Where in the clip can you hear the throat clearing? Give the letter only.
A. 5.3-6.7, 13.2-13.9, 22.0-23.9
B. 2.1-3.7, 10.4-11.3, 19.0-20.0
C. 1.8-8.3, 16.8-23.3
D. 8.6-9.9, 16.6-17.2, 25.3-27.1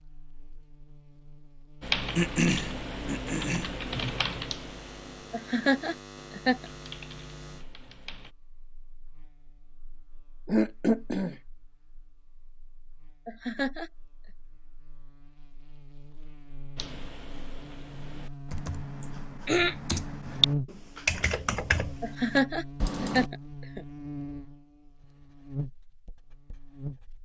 B.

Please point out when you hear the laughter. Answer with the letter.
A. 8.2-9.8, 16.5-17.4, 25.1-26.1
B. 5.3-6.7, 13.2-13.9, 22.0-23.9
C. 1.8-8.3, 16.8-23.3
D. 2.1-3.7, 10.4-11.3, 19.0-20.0
B.